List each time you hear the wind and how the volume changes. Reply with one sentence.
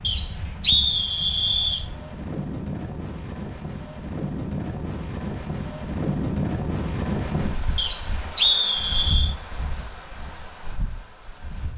You can hear the wind from 0.0 to 11.7 s, getting louder then quieter.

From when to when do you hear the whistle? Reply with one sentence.
The whistle can be heard from 0.0 to 1.9 s and from 7.8 to 9.3 s.